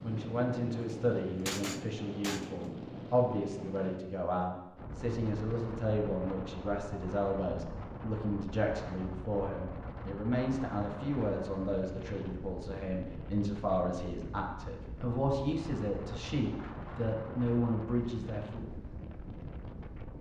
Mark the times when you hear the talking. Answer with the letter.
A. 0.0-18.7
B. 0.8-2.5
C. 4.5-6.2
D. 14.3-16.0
A.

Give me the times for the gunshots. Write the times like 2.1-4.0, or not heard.
0.8-2.5.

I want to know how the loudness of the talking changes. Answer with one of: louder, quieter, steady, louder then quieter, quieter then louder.
steady.